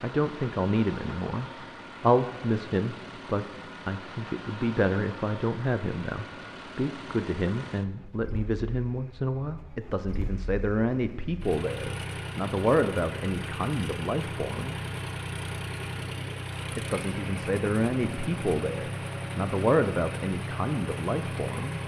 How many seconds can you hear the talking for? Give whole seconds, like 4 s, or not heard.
20 s.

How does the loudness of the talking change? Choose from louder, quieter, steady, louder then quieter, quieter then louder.
steady.